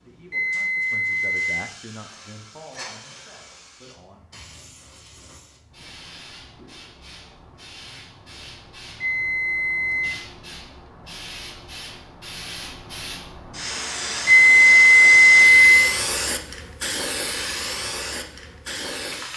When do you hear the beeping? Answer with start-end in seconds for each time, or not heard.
0.3-1.6, 9.0-10.2, 14.2-15.9.